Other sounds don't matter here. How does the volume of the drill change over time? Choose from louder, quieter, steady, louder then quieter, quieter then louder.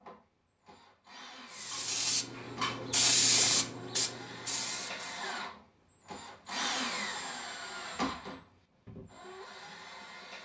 louder then quieter.